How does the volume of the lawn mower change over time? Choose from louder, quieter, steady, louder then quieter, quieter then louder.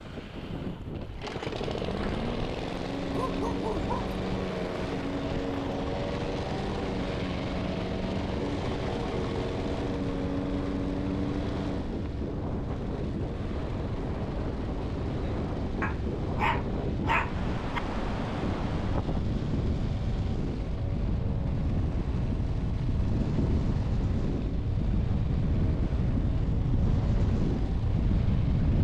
quieter.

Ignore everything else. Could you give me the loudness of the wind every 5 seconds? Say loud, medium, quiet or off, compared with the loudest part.
medium, medium, medium, loud, loud, loud.